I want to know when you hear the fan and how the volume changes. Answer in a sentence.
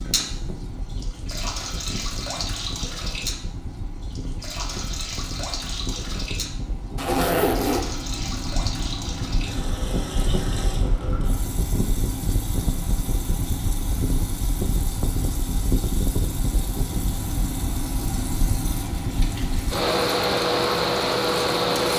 The fan can be heard from 0.0 to 21.9 s, getting louder.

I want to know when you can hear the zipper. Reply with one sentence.
You can hear the zipper from 7.0 to 7.8 s.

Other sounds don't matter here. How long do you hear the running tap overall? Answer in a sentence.
The running tap can be heard for 22 seconds in total.